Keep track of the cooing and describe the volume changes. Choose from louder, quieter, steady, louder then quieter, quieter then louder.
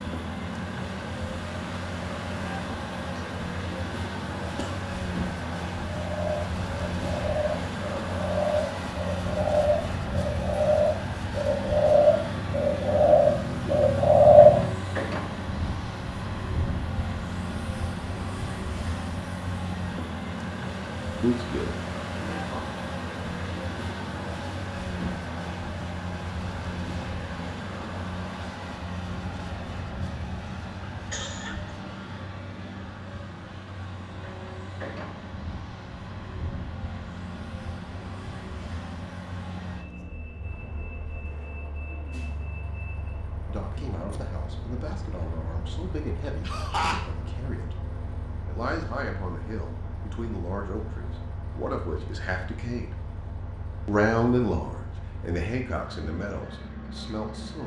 louder.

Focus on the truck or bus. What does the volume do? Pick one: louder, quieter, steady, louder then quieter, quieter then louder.
quieter.